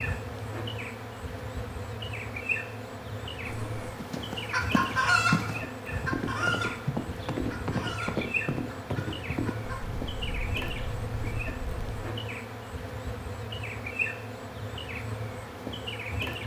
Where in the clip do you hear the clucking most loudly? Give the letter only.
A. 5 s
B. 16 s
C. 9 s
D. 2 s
A.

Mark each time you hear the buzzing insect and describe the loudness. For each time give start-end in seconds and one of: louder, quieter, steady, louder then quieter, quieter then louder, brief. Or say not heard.
0.0-16.4 steady.